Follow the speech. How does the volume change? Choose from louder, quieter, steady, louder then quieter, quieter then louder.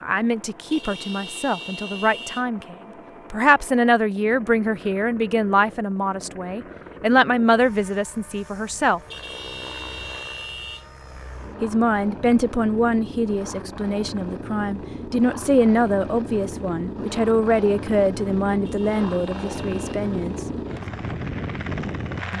steady.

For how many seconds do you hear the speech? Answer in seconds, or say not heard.
18 s.